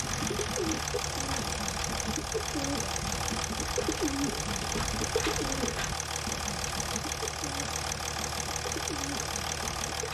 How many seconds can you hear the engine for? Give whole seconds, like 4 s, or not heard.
10 s.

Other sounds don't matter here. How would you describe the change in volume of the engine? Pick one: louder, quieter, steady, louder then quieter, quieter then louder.
steady.